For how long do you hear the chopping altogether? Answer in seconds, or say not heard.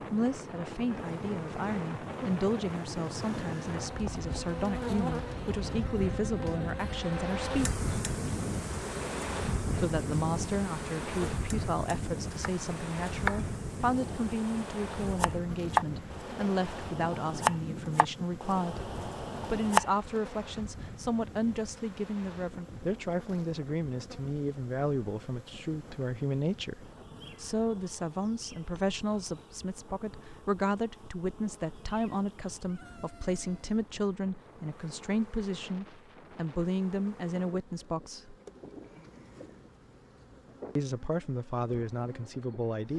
8 s.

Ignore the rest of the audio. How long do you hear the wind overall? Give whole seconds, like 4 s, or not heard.
43 s.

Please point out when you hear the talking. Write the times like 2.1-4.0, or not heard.
0.0-7.7, 9.8-38.4, 40.8-42.9.